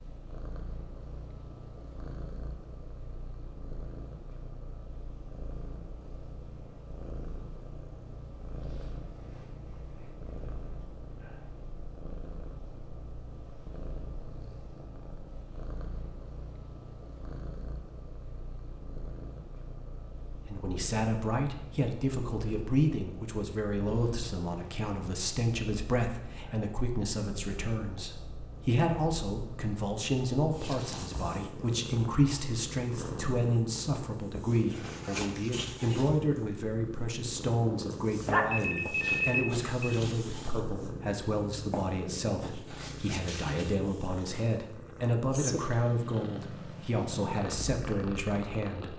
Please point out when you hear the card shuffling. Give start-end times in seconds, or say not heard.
not heard.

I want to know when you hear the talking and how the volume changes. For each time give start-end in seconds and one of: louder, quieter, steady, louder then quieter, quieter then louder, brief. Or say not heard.
20.4-48.9 steady.